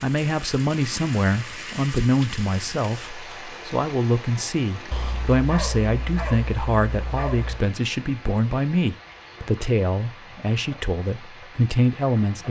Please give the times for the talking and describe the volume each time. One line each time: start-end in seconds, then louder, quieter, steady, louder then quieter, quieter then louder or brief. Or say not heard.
0.0-12.4 steady.